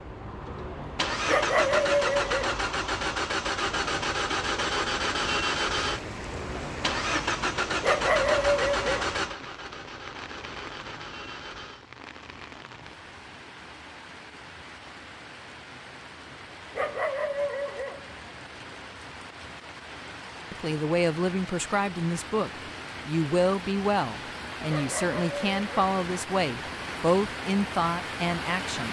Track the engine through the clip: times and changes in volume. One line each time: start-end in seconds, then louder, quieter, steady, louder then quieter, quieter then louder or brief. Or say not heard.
0.0-11.8 quieter.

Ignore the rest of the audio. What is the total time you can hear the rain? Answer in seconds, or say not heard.
23 s.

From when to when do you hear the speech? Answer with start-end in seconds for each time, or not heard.
20.5-28.8.